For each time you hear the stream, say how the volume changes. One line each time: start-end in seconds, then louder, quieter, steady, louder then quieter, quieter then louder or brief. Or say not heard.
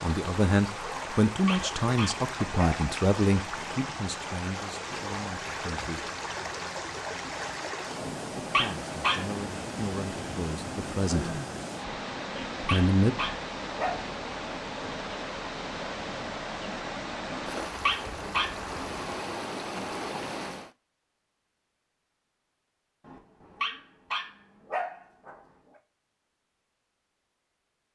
0.0-20.8 steady.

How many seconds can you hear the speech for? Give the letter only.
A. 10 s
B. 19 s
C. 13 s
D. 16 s
A.